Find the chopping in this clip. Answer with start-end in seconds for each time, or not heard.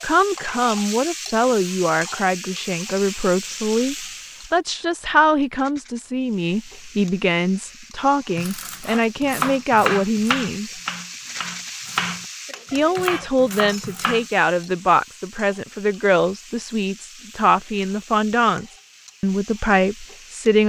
8.3-12.2, 12.9-14.2.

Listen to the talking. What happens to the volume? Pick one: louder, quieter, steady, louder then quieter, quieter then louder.
steady.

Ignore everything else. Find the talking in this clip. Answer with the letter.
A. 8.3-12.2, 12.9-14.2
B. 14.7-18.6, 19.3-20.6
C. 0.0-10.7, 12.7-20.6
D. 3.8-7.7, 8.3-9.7
C.